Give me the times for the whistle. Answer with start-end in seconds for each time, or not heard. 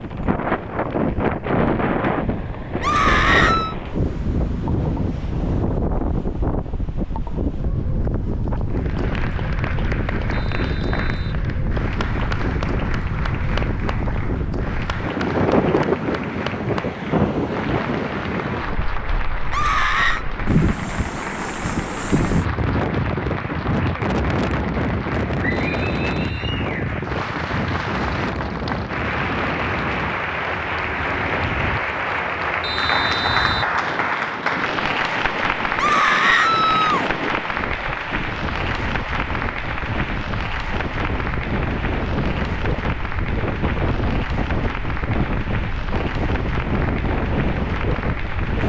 10.3-11.4, 25.5-26.6, 32.6-33.8.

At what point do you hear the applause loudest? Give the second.
33 s.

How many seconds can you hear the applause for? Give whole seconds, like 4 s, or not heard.
40 s.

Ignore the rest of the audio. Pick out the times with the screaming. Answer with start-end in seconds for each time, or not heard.
2.8-3.8, 19.5-20.2, 35.8-37.0.